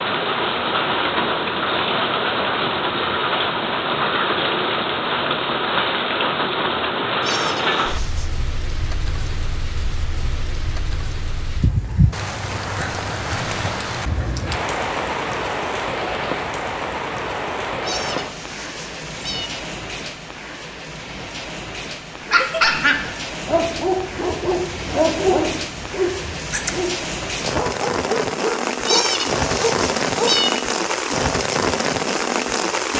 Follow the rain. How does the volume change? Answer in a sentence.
The volume of the rain goes down, then up.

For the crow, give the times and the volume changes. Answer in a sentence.
You can't hear the crow here.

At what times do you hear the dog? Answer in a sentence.
The dog can be heard from 22.2 to 30.4 s.